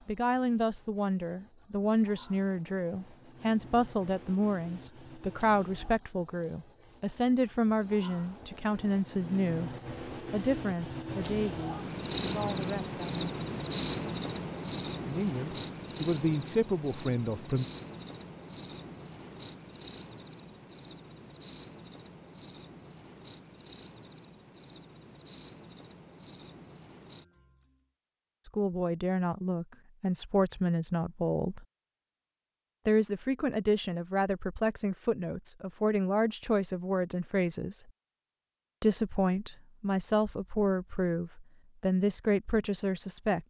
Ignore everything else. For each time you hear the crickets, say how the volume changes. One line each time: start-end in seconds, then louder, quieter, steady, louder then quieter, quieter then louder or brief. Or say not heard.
0.0-27.8 louder then quieter.